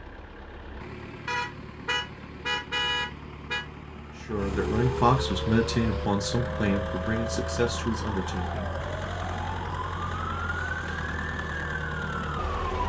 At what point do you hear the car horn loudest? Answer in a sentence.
The loudest moment of the car horn is at 3 seconds.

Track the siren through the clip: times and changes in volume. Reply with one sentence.
The siren can be heard from 4.7 to 12.8 s, at a steady volume.